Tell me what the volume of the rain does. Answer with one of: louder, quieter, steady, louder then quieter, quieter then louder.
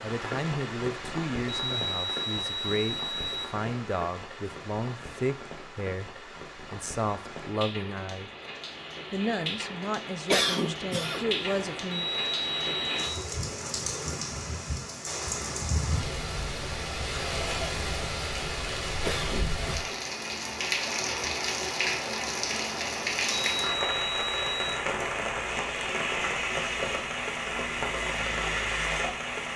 louder.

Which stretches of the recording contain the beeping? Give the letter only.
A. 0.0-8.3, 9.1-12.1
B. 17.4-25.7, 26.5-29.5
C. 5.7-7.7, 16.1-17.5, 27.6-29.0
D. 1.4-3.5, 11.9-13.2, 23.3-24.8
D.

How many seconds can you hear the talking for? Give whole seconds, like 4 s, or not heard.
11 s.